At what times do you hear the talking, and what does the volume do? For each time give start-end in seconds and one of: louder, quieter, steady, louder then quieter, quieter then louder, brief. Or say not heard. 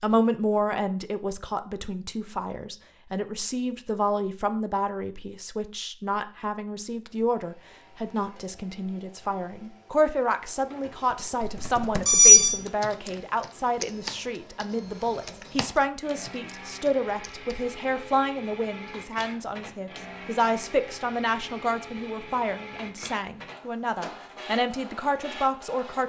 0.0-26.0 steady.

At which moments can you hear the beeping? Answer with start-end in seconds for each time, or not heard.
11.4-12.6.